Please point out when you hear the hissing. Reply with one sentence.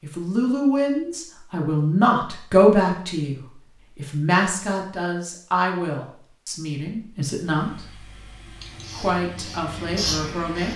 You can hear the hissing from 8.6 to 10.7 s.